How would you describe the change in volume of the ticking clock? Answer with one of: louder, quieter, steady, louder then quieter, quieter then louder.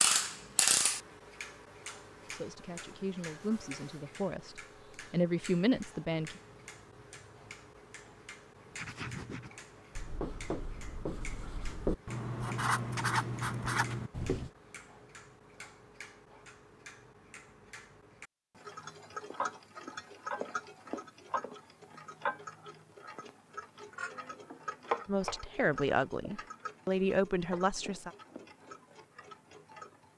quieter then louder.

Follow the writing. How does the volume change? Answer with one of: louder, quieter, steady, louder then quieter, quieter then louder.
louder.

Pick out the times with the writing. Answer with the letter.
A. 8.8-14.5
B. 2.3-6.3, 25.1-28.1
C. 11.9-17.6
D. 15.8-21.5
A.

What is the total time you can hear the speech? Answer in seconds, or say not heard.
7 s.